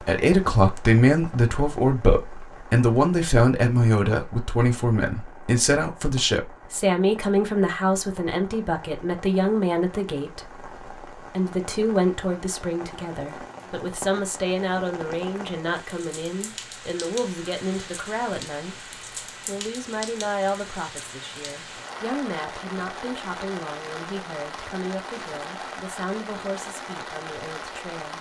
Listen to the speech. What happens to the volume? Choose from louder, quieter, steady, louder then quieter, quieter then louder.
quieter.